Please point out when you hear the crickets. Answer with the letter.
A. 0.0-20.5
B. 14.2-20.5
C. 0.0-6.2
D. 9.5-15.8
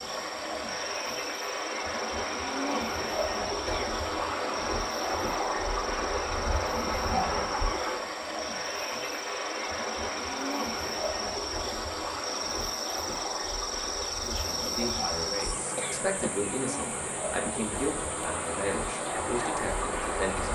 A.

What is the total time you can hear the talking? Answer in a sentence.
You can hear the talking for 6 seconds altogether.